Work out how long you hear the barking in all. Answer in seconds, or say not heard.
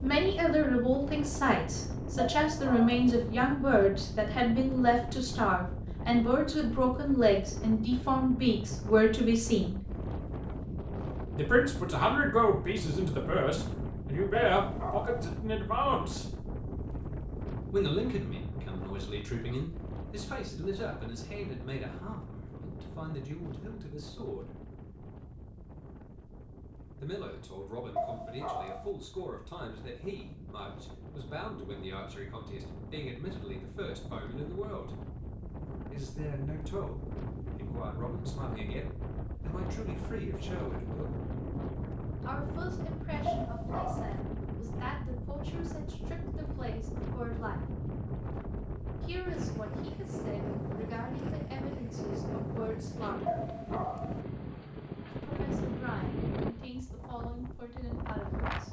5 s.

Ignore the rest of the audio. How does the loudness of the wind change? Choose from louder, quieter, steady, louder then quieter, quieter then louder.
quieter then louder.